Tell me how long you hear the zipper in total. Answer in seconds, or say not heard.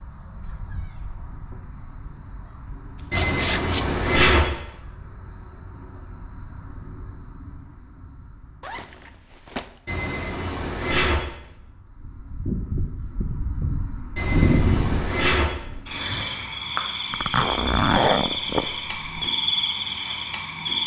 4 s.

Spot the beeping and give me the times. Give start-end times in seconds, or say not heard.
3.1-4.4, 9.8-11.2, 14.2-15.4.